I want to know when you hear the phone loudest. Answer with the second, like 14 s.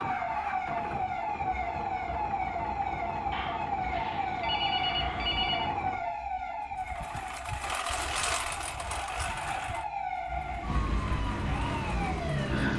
5 s.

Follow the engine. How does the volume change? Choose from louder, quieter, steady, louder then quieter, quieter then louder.
louder then quieter.